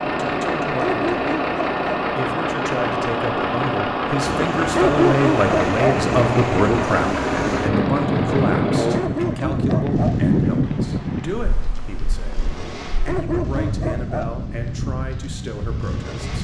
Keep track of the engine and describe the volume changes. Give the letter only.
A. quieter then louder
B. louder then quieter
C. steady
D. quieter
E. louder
D.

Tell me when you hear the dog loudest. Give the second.
5 s.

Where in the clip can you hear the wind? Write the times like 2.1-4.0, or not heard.
4.2-16.3.